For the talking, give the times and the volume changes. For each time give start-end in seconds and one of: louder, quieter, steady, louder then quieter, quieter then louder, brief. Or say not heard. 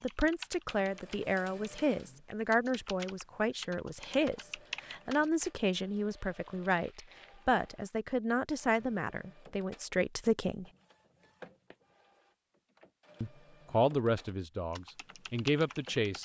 0.0-10.7 steady
13.2-16.1 brief.